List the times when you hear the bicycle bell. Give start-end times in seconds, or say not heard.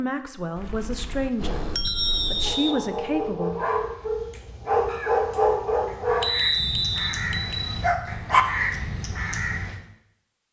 0.6-2.5, 6.2-7.8.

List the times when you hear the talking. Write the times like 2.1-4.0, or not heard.
0.0-3.5.